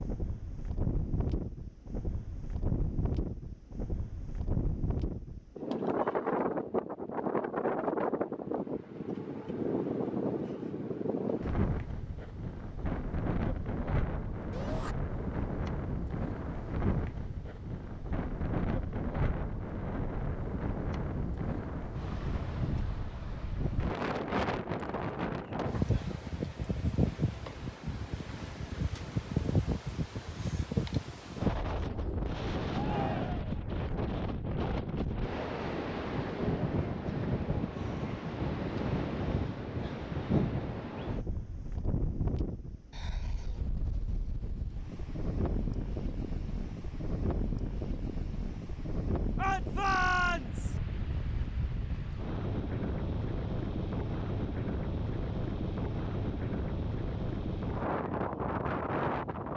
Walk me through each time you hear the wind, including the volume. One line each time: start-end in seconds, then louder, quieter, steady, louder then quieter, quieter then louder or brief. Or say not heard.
0.0-59.5 steady.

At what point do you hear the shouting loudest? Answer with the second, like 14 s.
50 s.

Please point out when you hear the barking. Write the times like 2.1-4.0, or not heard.
not heard.